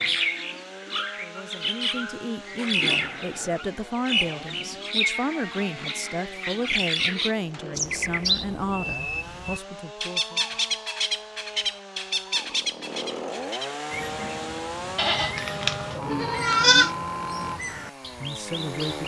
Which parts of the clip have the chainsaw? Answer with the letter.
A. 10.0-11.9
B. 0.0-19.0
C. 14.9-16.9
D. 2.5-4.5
B.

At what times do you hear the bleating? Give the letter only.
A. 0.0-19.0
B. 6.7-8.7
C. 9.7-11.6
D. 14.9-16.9
D.